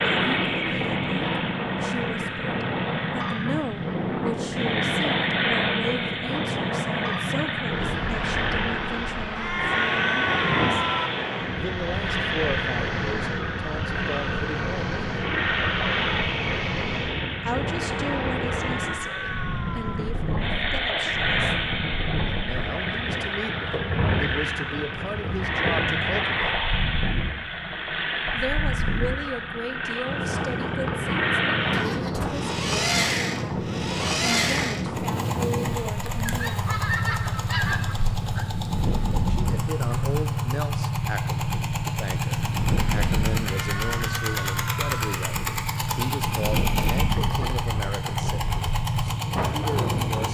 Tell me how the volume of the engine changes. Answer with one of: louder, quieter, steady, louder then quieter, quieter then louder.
steady.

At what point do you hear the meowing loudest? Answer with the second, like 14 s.
10 s.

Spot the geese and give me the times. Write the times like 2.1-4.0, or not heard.
36.2-38.5.